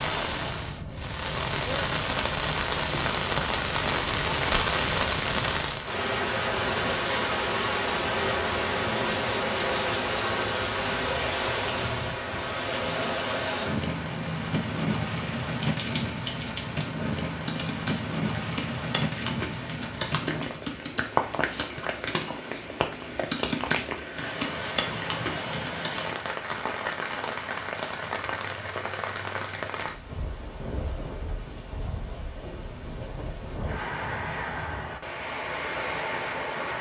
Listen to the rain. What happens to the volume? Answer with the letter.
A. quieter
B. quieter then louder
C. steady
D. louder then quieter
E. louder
A.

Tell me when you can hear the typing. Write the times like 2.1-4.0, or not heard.
15.6-26.1.